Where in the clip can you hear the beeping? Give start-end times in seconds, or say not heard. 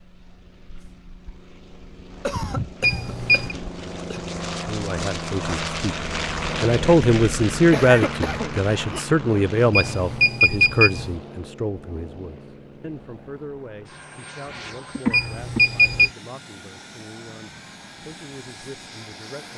2.8-3.5, 9.7-11.2, 15.1-16.1.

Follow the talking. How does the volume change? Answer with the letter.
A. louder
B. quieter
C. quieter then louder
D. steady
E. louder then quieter
B.